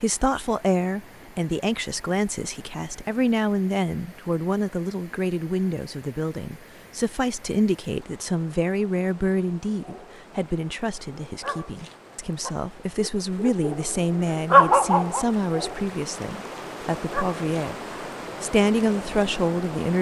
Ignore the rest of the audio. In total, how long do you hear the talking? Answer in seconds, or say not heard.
19 s.